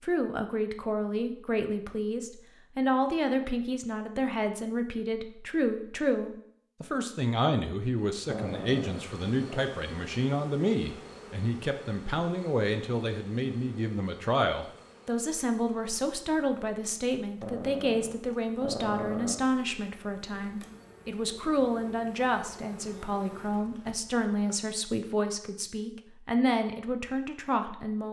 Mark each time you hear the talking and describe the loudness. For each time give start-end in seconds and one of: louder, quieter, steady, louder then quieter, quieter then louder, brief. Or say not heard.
0.0-28.0 steady.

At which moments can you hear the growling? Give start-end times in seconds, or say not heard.
8.2-9.7, 17.4-19.4.